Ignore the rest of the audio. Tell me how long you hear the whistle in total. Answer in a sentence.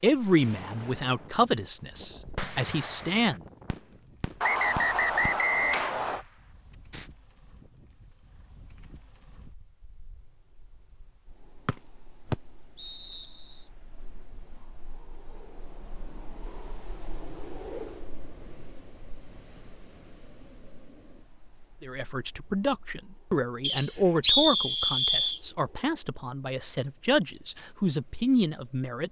You can hear the whistle for 5 seconds altogether.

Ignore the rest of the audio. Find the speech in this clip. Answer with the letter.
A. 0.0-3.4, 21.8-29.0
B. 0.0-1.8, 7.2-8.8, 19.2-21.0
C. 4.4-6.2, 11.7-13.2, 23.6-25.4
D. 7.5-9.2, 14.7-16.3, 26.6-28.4
A.